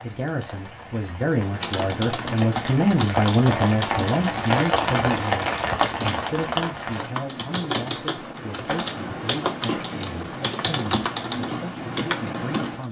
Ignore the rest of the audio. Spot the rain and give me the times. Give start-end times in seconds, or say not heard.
0.0-7.1.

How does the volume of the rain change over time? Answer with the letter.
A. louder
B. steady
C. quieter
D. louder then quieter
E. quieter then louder
A.